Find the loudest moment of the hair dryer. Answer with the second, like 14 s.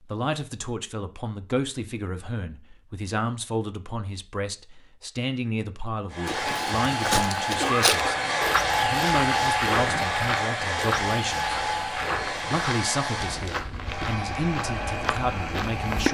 9 s.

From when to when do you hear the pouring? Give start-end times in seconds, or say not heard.
not heard.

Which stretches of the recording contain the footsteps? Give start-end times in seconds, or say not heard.
6.2-16.0.